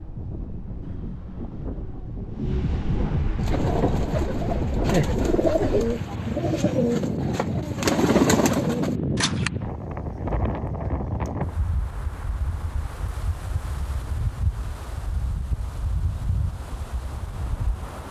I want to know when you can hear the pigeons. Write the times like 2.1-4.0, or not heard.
3.4-9.5.